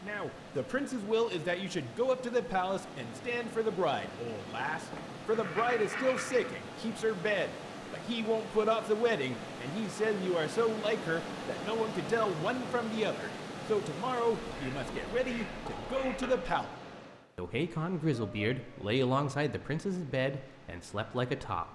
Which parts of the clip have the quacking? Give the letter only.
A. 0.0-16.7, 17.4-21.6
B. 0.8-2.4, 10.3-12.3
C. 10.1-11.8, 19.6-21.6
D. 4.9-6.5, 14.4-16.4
D.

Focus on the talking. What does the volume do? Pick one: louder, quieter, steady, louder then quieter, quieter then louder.
steady.